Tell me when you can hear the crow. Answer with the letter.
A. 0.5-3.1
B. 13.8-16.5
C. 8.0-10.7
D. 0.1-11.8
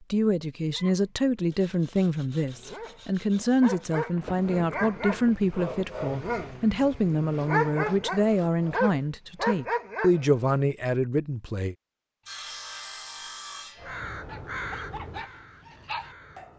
B.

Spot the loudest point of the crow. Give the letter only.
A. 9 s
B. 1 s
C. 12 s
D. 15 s
D.